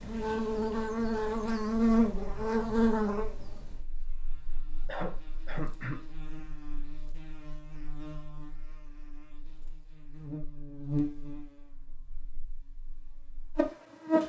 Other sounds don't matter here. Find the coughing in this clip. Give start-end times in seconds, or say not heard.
4.8-6.0.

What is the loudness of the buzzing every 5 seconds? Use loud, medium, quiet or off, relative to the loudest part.
loud, quiet, medium.